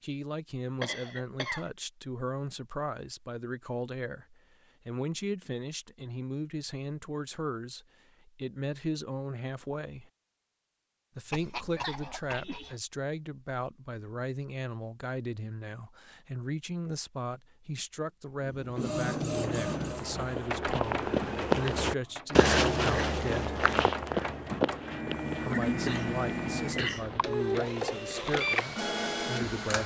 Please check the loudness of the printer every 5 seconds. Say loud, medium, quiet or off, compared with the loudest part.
off, off, off, loud, medium, loud.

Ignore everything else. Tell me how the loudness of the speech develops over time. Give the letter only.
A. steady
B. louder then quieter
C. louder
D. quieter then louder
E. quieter
A.